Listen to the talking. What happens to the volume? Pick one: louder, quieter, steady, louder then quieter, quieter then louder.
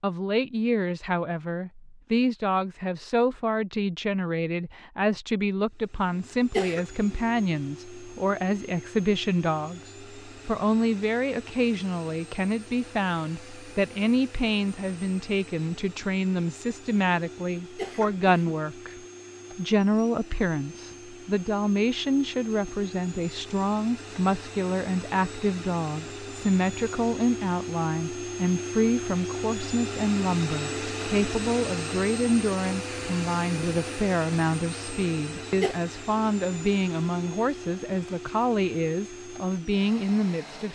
steady.